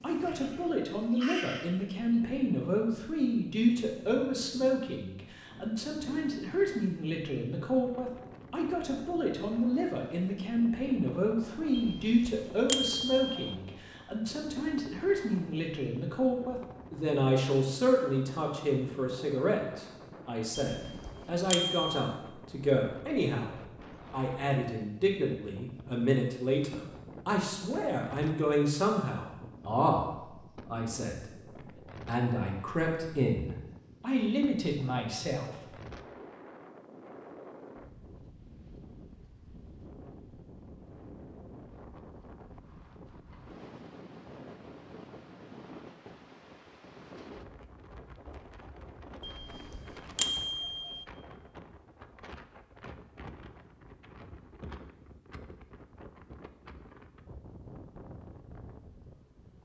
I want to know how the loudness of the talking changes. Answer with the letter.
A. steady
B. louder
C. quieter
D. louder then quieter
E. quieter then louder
A.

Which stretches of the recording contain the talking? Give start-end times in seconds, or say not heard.
0.0-31.4, 32.0-35.7.